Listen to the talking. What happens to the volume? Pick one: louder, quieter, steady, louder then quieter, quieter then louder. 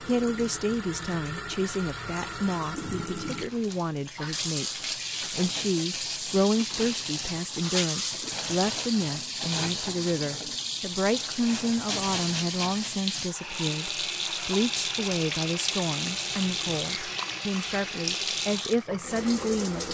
steady.